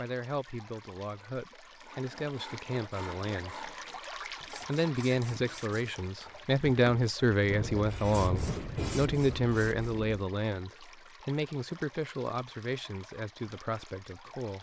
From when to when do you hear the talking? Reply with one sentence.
You can hear the talking from 0.0 to 3.7 s and from 4.5 to 14.5 s.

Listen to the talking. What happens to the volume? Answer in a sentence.
The volume of the talking goes up, then down.